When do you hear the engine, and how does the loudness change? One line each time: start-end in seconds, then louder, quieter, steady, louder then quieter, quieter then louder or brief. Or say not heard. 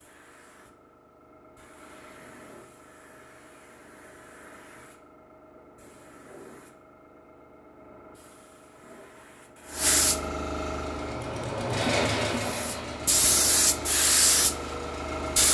10.8-15.5 quieter.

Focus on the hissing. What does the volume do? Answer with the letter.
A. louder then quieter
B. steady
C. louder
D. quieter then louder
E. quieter
C.